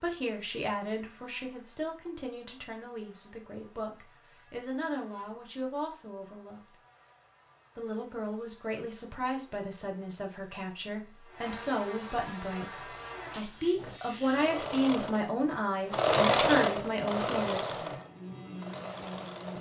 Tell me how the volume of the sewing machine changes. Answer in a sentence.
The volume of the sewing machine goes up, then down.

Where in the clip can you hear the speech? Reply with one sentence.
The speech can be heard from 0.0 to 6.8 s and from 7.8 to 17.9 s.